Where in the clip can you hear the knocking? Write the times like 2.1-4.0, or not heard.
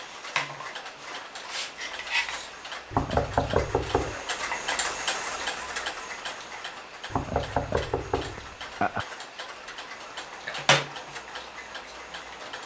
2.9-4.2, 7.1-9.1.